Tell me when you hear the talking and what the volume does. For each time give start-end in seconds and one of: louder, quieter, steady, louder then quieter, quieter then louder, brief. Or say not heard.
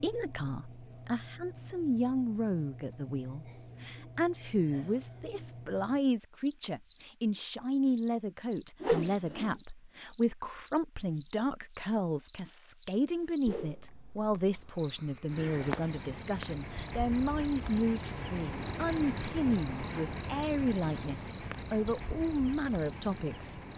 0.0-23.6 steady.